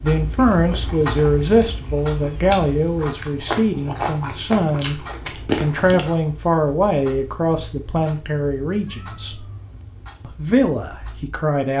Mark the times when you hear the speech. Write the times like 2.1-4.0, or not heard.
0.0-5.0, 5.6-9.4, 10.2-11.7.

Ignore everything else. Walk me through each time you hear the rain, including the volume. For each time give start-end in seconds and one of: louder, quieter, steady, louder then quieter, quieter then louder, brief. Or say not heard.
not heard.